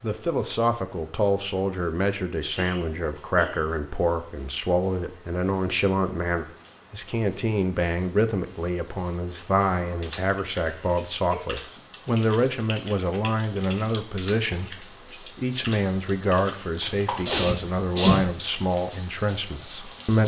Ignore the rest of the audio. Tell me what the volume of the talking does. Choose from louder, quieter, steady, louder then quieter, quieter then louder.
steady.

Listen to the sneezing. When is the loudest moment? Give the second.
18 s.